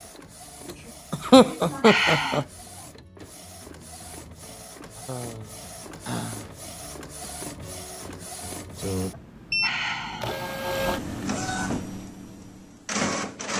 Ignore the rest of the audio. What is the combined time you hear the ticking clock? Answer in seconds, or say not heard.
not heard.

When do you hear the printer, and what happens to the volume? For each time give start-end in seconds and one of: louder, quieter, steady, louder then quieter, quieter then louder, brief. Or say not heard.
0.0-13.5 louder.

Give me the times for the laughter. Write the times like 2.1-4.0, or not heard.
1.1-2.5.